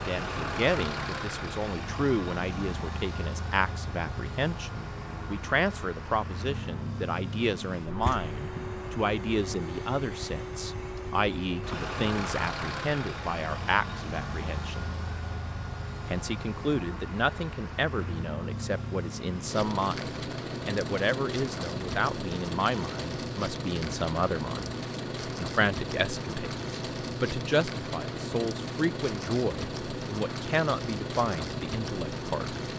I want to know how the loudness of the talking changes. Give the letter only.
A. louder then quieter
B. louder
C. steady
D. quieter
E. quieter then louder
C.